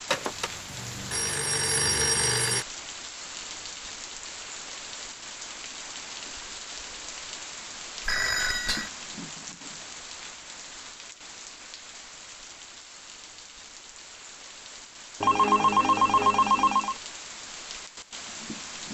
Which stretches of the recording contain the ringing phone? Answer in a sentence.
You can hear the ringing phone from 0.1 to 2.6 s, from 8.1 to 8.9 s and from 15.2 to 16.9 s.